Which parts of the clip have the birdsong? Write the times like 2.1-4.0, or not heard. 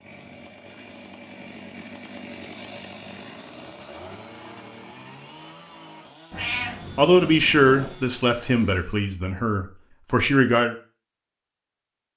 not heard.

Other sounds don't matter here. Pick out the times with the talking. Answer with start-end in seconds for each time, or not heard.
7.0-10.8.